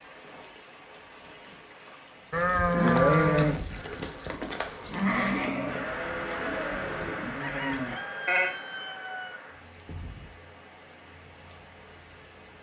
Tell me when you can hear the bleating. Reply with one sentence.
You can hear the bleating from 2.3 to 8.6 s.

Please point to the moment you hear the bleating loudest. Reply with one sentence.
The volume of the bleating peaks at 3 seconds.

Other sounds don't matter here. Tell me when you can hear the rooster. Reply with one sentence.
The rooster can be heard from 7.4 to 9.4 s.